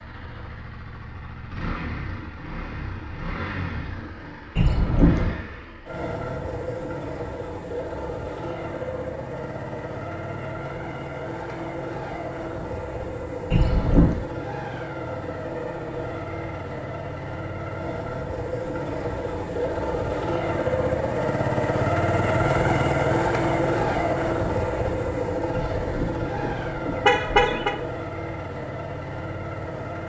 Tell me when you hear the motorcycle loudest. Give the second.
23 s.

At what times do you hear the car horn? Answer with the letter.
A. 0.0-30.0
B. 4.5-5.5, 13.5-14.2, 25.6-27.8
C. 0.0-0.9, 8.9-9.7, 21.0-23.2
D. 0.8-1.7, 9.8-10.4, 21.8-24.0
B.